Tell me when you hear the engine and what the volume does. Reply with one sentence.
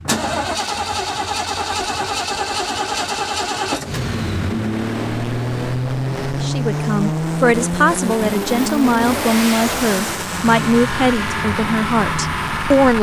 You can hear the engine from 0.0 to 12.9 s, at a steady volume.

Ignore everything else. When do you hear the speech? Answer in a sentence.
The speech can be heard from 6.4 to 12.9 s.